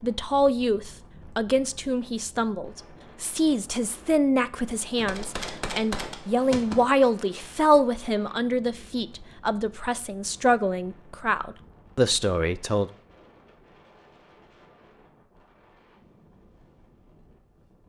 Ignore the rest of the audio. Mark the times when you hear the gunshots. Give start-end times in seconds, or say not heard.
5.0-6.8.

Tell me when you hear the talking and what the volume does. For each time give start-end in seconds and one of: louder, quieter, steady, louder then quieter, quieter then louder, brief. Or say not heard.
0.0-12.9 steady.